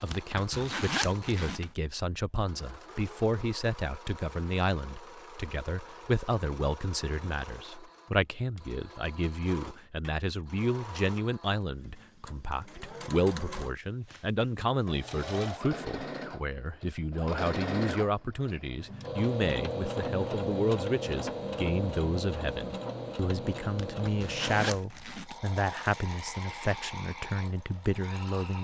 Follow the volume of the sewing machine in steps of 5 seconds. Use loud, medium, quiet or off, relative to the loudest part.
quiet, quiet, medium, loud, loud, medium.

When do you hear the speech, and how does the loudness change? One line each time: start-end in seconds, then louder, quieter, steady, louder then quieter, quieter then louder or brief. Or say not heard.
0.0-28.5 steady.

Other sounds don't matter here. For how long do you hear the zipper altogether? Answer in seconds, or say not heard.
3 s.